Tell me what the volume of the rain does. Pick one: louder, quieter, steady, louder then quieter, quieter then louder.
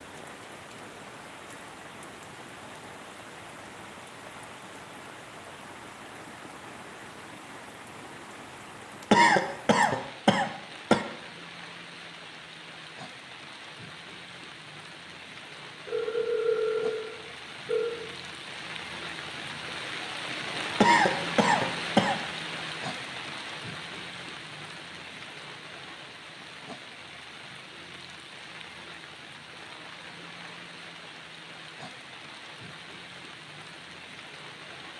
louder then quieter.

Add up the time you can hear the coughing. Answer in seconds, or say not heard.
3 s.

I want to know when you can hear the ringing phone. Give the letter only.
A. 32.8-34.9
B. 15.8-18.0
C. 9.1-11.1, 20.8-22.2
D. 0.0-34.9
B.